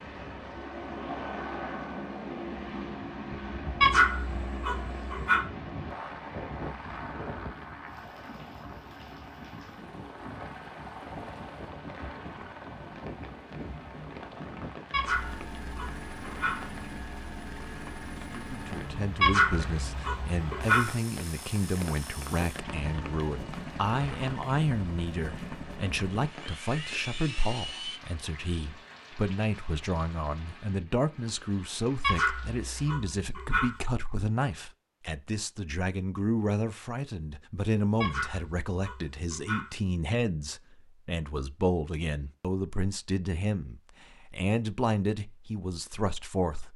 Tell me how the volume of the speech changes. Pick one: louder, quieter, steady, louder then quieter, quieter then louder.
steady.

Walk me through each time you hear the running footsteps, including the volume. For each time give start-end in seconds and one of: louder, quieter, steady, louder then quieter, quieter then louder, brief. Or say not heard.
not heard.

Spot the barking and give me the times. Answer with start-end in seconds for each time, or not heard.
3.8-5.5, 14.9-16.6, 19.2-20.9, 32.0-33.8, 38.0-39.8.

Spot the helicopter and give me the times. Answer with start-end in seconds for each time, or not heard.
0.0-28.0.